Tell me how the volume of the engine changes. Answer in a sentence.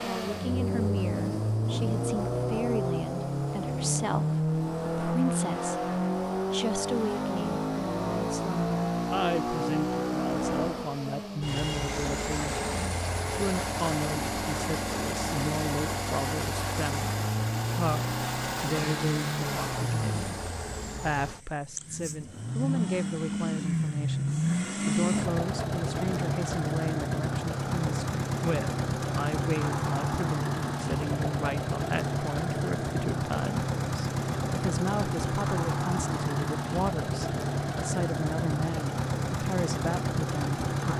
The loudness of the engine stays about the same.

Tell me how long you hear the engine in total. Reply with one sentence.
You can hear the engine for 41 seconds altogether.